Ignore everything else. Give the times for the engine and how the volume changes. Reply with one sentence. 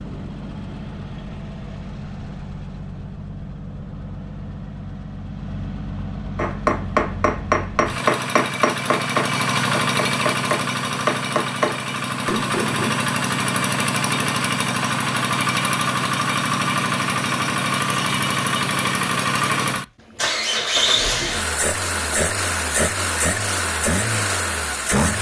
You can hear the engine from 0.0 to 25.1 s, getting louder.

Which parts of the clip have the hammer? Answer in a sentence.
The hammer can be heard from 6.3 to 12.9 s.